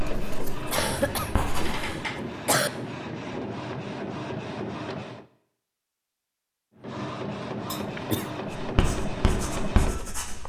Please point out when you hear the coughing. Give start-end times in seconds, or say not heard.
0.7-2.7, 7.7-8.3.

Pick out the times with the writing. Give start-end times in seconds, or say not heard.
0.0-1.9, 8.6-10.4.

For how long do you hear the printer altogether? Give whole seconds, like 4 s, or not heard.
9 s.